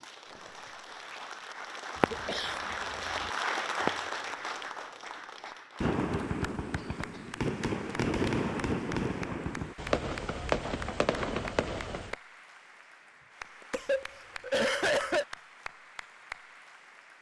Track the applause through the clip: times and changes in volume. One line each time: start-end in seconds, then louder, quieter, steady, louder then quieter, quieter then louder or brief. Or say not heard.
0.0-17.1 quieter.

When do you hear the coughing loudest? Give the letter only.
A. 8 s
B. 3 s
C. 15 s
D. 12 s
C.